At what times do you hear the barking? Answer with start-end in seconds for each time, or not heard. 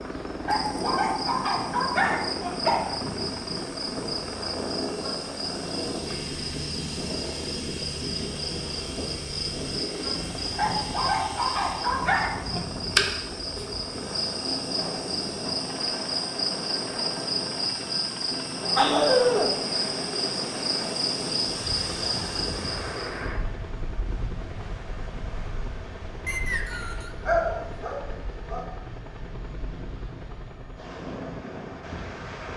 0.4-2.8, 10.5-12.6, 18.8-19.6, 27.2-28.6.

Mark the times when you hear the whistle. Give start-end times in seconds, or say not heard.
26.2-27.1.